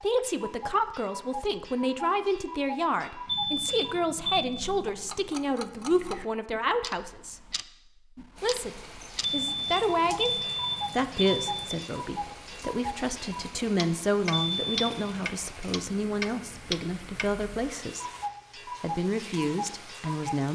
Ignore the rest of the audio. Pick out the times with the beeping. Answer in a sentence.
You can hear the beeping from 3.2 to 4.5 s, from 9.2 to 11.8 s and from 14.3 to 15.2 s.